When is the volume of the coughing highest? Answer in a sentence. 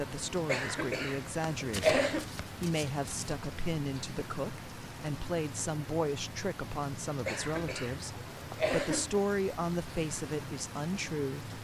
The loudest moment of the coughing is at 2 seconds.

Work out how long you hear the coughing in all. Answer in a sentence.
You can hear the coughing for 4 seconds altogether.